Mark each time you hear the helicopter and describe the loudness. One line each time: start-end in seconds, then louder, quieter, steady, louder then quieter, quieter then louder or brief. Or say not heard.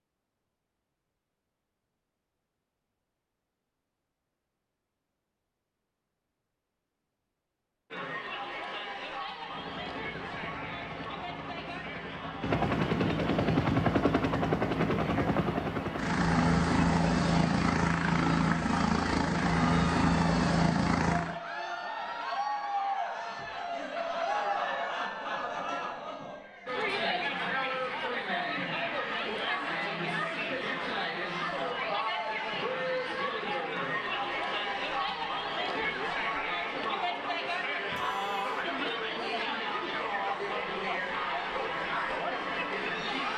9.4-21.4 louder.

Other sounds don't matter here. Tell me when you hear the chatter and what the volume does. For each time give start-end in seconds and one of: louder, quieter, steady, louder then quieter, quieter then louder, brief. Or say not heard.
7.9-43.3 louder.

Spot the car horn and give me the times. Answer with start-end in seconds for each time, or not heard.
37.9-38.6.